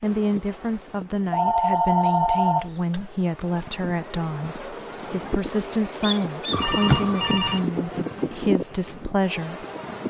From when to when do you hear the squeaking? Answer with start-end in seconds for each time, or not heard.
2.0-3.0, 6.0-6.7.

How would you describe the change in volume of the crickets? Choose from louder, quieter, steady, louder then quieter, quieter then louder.
louder.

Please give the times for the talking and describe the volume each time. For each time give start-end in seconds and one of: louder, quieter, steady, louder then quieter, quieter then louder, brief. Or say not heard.
0.0-9.7 steady.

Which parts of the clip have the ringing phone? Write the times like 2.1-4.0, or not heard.
1.3-3.2, 6.5-7.6.